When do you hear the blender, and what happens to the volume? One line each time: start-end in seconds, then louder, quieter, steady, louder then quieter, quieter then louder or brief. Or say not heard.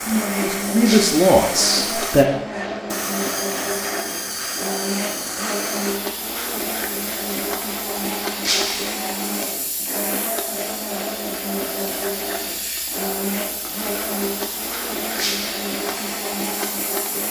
0.0-17.2 steady.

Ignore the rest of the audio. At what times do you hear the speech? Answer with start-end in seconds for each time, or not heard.
0.0-2.2.